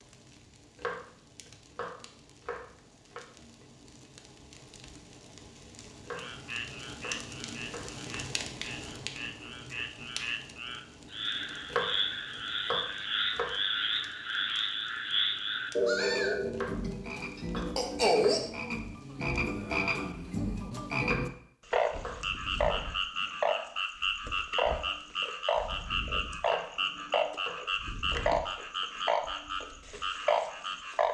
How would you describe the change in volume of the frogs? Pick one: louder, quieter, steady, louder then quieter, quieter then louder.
louder.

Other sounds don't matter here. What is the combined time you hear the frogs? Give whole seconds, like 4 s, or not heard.
25 s.